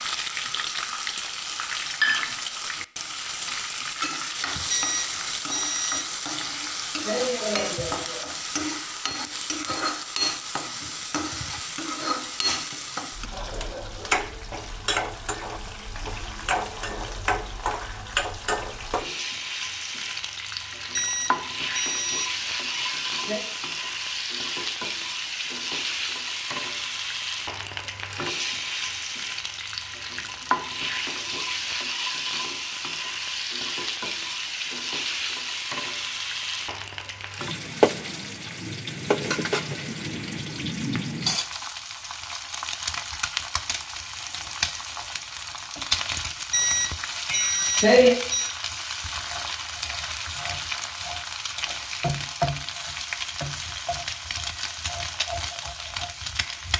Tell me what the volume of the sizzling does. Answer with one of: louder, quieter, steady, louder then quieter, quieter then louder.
steady.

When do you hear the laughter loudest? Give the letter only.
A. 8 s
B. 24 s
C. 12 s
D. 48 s
D.